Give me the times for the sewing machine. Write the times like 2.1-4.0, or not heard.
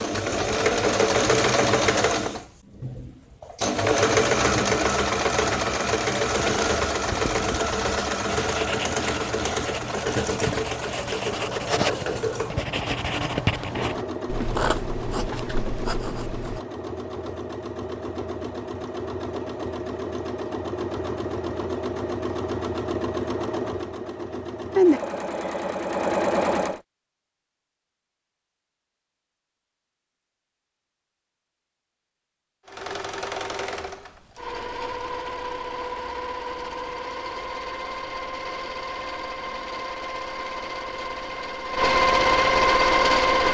0.0-26.8, 32.6-43.4.